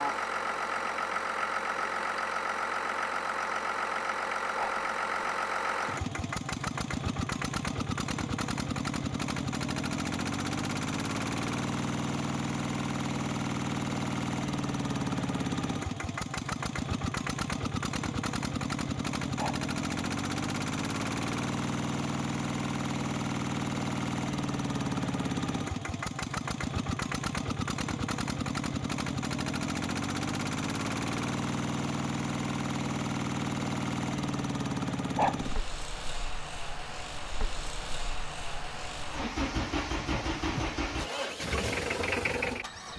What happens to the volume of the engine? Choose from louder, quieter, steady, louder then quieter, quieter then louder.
steady.